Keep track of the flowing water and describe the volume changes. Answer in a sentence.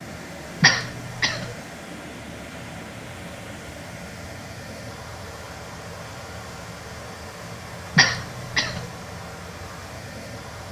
The loudness of the flowing water stays about the same.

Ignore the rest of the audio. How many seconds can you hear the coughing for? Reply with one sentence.
You can hear the coughing for 2 seconds altogether.